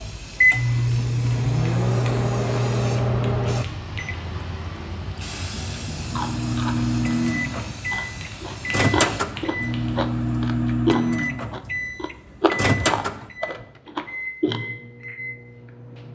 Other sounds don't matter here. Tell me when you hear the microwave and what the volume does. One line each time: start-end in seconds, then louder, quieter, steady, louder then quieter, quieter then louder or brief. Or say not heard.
0.0-4.5 quieter
6.0-16.0 quieter.